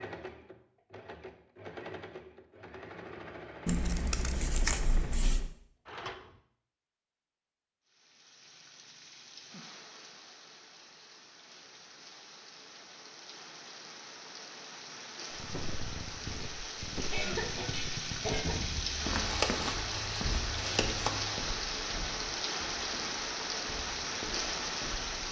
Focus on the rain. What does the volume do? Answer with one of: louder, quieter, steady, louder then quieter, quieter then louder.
louder.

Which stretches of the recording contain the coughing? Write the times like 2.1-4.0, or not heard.
17.1-18.6.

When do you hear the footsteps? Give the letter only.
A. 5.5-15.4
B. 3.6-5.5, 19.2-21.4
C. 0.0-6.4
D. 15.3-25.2
D.